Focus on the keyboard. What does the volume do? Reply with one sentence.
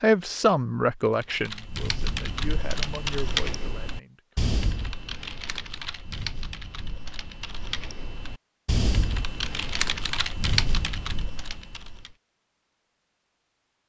The loudness of the keyboard goes down, then up.